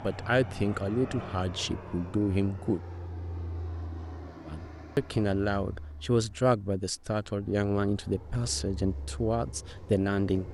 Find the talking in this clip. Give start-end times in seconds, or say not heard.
0.0-2.8, 4.5-10.5.